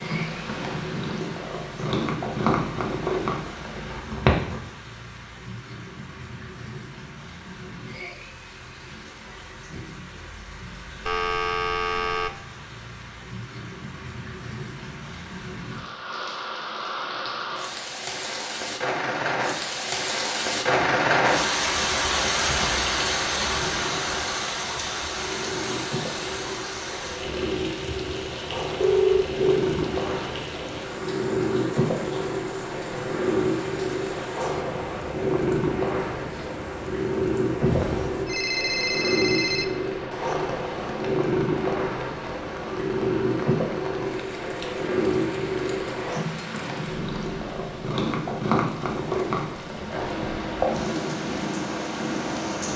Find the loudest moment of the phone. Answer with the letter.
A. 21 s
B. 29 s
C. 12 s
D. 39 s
B.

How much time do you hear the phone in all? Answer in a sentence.
The phone can be heard for 4 seconds in total.